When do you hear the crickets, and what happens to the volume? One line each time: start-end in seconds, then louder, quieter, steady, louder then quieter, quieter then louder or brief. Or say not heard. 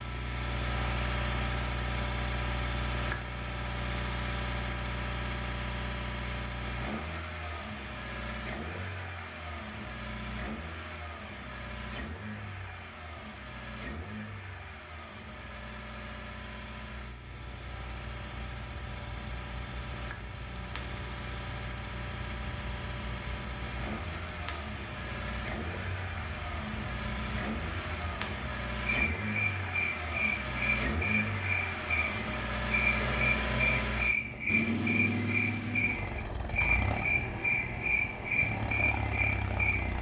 0.0-39.9 louder.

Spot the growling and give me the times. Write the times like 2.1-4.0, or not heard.
33.0-34.0.